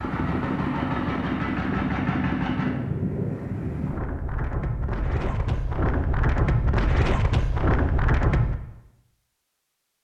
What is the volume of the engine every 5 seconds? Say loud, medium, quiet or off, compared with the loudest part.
loud, off.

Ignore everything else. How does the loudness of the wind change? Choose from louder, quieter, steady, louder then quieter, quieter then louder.
louder.